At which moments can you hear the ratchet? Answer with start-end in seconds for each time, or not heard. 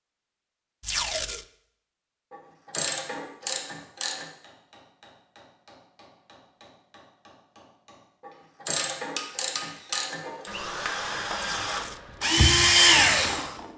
2.3-4.2, 8.7-10.5.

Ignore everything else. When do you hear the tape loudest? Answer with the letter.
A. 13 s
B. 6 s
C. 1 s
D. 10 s
C.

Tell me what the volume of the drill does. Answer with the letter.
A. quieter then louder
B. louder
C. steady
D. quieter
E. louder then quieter
B.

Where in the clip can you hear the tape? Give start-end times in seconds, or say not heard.
0.8-1.4, 11.6-12.2.